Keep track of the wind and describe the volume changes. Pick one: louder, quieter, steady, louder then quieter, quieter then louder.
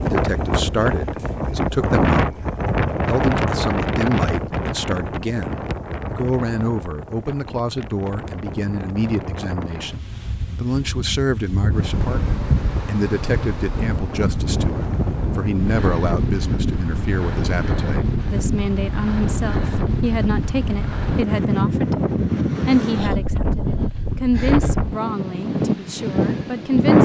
quieter then louder.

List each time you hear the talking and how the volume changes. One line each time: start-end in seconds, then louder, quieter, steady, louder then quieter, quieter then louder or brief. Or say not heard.
0.0-2.4 brief
3.0-27.0 steady.